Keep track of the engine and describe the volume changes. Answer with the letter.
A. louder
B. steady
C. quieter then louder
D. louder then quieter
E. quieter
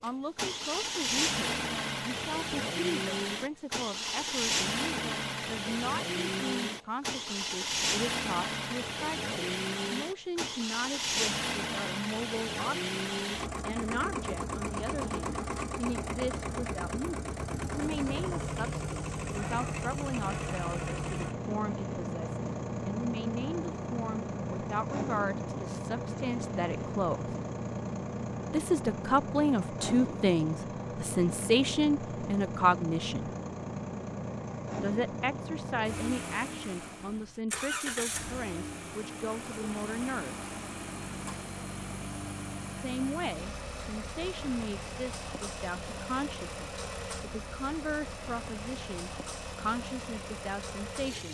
E.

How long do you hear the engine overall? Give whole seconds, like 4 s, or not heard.
51 s.